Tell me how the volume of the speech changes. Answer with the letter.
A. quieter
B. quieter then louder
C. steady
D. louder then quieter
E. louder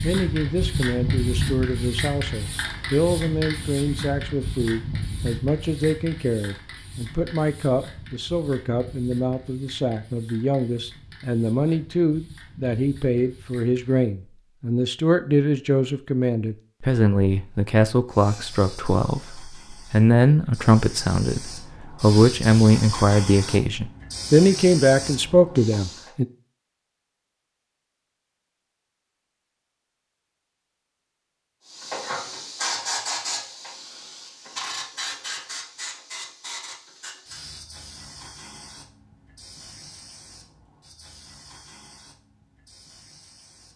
E.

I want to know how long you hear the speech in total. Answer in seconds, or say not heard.
26 s.